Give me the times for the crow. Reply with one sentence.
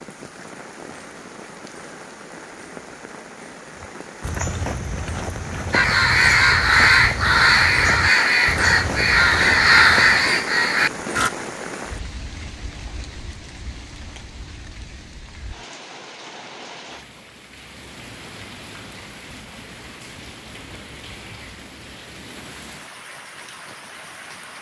The crow can be heard from 5.7 to 11.3 s.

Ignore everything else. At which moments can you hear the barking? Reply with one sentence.
You can't hear the barking here.